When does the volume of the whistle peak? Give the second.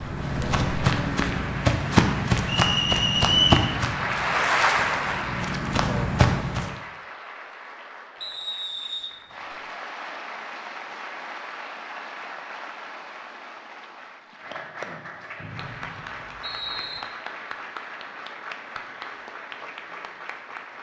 3 s.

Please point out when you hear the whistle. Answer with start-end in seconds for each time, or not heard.
2.5-3.7, 8.2-9.6, 15.4-17.0.